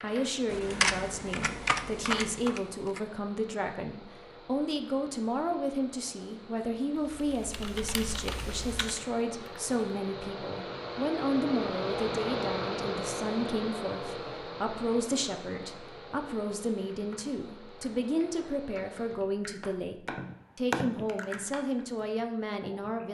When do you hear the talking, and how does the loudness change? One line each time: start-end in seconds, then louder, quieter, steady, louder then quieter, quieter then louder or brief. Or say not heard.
0.0-23.0 steady.